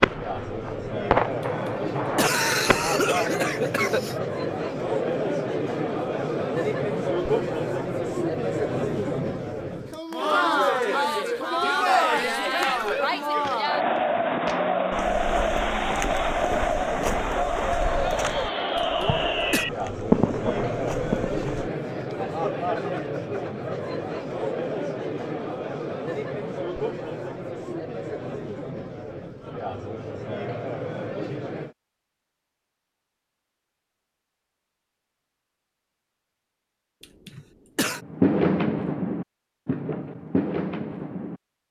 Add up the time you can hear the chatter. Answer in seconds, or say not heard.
32 s.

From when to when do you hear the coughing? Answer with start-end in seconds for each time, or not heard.
1.4-4.2, 18.8-19.6, 37.0-38.0.